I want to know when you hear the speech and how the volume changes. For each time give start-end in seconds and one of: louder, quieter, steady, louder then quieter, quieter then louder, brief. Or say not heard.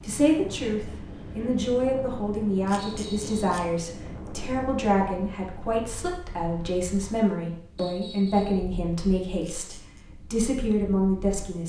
0.0-11.6 steady.